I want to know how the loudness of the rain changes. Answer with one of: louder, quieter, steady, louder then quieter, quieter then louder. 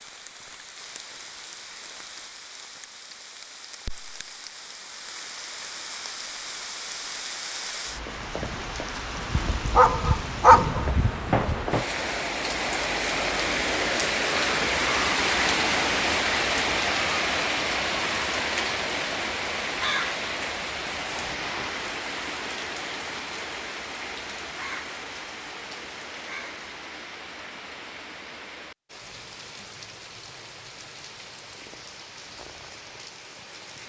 louder then quieter.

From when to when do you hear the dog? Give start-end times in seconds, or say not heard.
9.3-11.6.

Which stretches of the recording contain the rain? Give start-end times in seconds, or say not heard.
0.0-33.8.